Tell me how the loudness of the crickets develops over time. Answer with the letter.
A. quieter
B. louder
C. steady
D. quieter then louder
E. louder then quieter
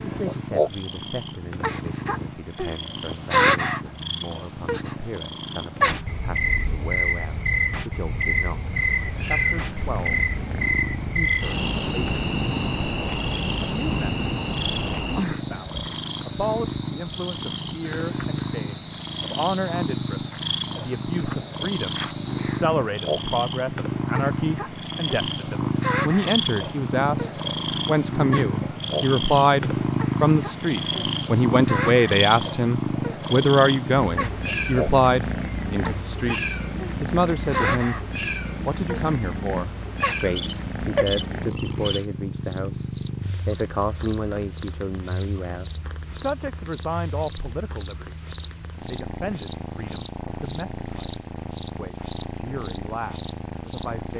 D.